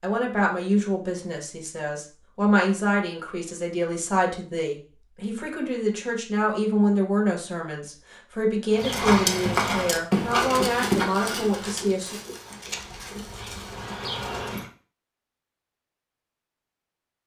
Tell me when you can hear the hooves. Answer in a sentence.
You can hear the hooves from 8.7 to 14.7 s.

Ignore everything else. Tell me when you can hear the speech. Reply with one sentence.
You can hear the speech from 0.0 to 12.2 s.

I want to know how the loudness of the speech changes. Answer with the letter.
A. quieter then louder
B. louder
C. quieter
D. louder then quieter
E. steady
E.